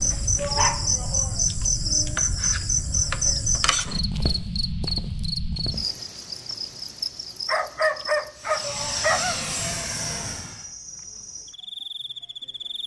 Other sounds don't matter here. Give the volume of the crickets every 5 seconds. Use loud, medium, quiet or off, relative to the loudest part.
loud, medium, quiet.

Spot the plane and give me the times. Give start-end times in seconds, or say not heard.
8.3-10.7.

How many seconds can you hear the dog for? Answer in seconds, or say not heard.
3 s.